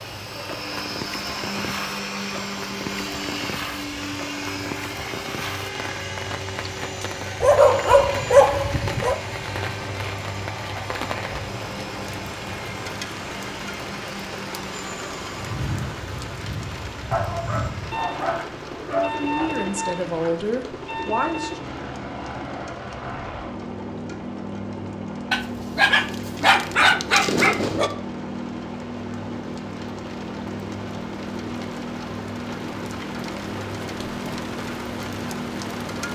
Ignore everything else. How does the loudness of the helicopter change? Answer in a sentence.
The volume of the helicopter stays about the same.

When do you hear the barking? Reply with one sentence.
You can hear the barking from 7.4 to 9.2 s, from 17.1 to 19.5 s and from 25.3 to 27.9 s.